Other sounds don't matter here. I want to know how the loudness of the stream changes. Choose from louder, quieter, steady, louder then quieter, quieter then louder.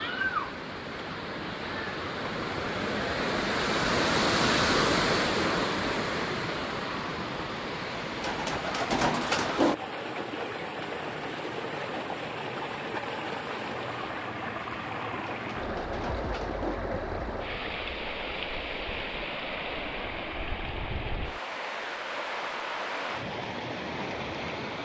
quieter.